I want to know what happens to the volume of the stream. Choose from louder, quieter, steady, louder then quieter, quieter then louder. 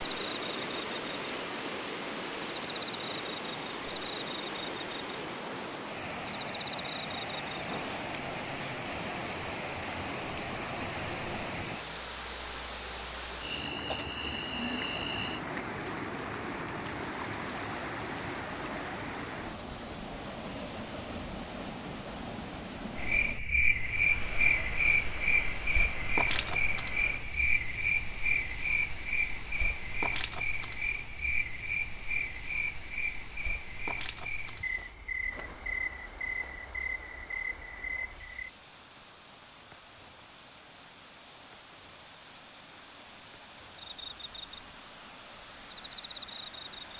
quieter.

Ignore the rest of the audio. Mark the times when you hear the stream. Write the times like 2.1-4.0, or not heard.
0.0-46.9.